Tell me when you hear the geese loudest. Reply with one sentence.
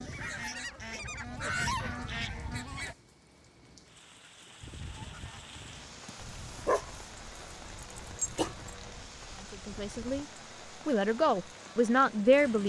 The volume of the geese peaks at 2 seconds.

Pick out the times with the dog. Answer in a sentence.
The dog can be heard from 6.0 to 8.8 s.